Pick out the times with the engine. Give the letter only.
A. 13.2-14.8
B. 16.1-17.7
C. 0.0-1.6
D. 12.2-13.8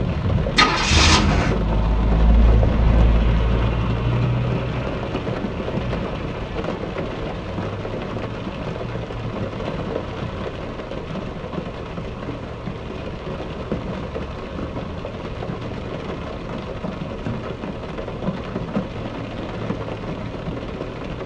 C.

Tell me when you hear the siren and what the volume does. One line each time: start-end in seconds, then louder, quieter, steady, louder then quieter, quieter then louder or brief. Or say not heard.
not heard.